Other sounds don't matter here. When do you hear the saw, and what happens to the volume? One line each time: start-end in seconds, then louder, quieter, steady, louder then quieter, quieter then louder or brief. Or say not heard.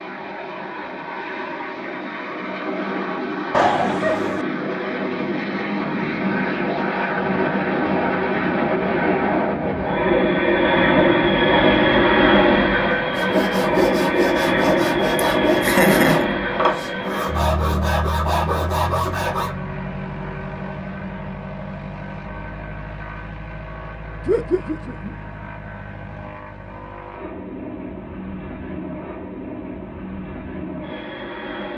13.1-19.6 steady.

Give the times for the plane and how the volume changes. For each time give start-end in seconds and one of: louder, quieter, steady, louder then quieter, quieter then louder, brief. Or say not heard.
0.0-31.7 louder then quieter.